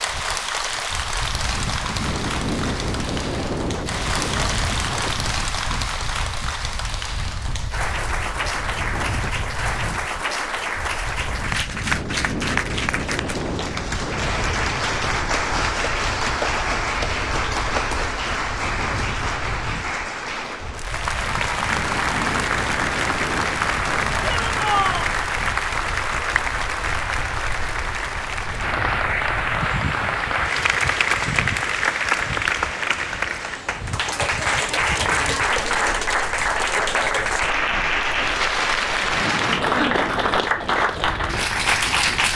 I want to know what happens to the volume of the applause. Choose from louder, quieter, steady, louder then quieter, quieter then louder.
louder.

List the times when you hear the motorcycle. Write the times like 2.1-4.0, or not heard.
not heard.